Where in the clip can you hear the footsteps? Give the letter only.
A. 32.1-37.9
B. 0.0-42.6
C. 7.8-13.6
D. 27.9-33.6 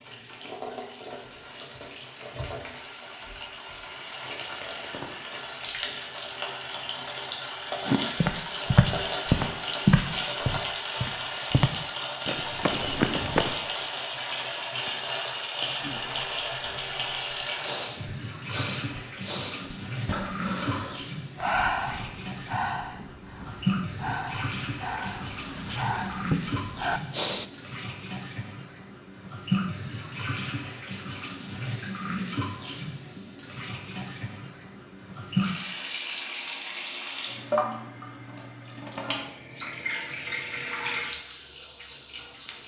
C.